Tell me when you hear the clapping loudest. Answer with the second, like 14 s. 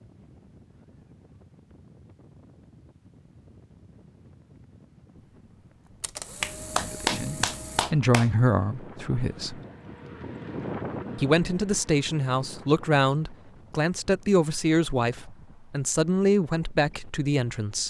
7 s.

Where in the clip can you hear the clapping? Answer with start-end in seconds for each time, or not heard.
6.4-8.3.